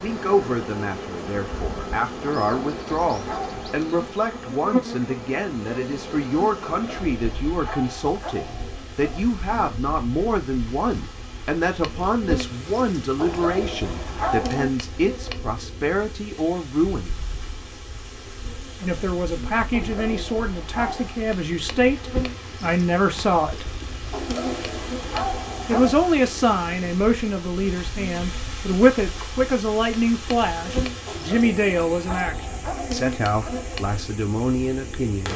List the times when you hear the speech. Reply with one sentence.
The speech can be heard from 0.0 to 17.2 s, from 18.8 to 23.6 s and from 25.6 to 35.3 s.